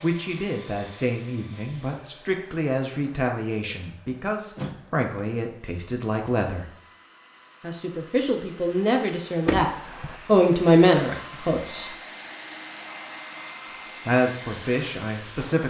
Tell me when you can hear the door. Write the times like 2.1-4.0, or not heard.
4.5-5.0, 9.4-10.2.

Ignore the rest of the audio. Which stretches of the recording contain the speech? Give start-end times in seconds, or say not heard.
0.0-6.7, 7.6-11.9, 14.1-15.6.